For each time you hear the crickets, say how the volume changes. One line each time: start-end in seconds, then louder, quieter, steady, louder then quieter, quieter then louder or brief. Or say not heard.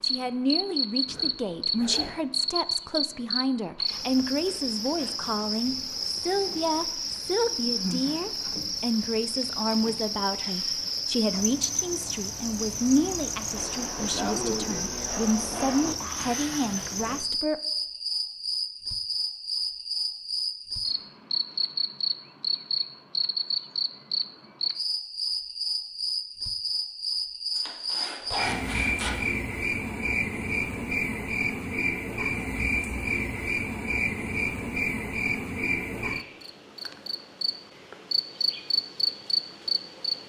0.0-40.2 steady.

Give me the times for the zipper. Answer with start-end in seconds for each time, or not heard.
1.1-2.2, 16.1-17.1, 27.6-29.1.